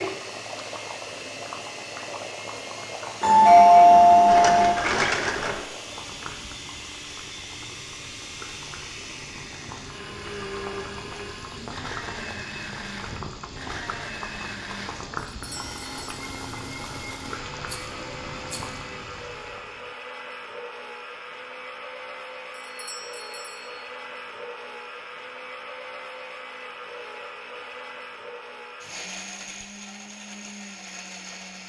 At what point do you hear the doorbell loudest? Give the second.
4 s.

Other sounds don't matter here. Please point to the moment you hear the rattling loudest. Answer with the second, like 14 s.
5 s.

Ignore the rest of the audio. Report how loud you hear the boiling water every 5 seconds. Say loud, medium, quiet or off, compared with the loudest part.
loud, medium, loud, loud, off, off, off.